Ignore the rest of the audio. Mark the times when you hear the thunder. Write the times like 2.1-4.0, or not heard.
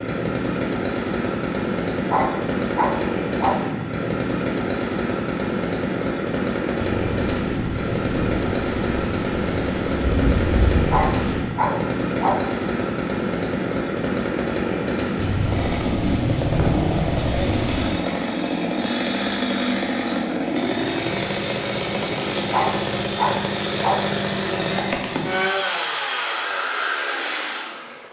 6.8-11.6, 15.2-18.1.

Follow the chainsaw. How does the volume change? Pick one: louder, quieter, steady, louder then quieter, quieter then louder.
steady.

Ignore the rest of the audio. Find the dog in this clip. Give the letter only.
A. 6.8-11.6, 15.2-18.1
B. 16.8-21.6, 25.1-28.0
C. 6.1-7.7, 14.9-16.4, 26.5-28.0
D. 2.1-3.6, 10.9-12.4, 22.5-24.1
D.